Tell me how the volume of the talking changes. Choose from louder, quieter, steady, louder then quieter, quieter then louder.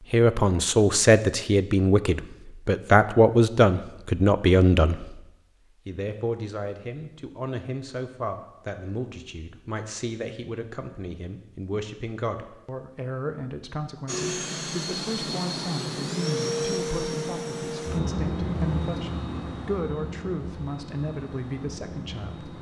quieter.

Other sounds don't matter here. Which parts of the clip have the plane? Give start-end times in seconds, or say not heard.
14.1-22.5.